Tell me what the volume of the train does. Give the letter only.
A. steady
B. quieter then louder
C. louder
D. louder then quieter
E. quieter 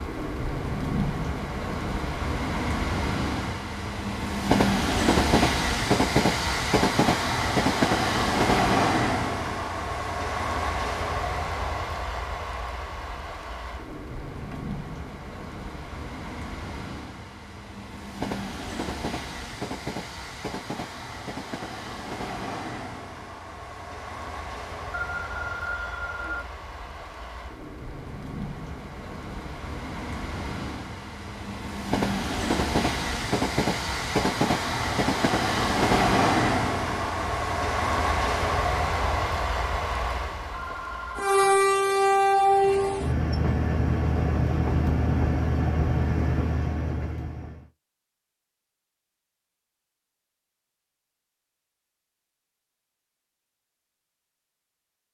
B.